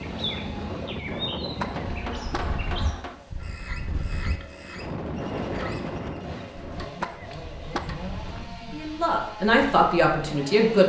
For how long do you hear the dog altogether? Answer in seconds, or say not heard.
not heard.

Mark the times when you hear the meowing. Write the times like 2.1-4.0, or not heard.
not heard.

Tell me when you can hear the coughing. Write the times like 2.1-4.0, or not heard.
0.9-2.6, 6.3-8.1.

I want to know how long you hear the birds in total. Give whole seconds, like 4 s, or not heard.
6 s.